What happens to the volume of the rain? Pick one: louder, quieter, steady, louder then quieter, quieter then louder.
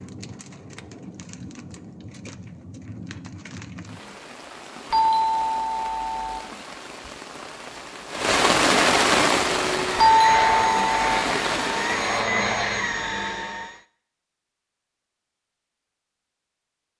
louder then quieter.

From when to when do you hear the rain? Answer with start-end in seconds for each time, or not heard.
0.0-12.3.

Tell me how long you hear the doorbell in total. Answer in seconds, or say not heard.
3 s.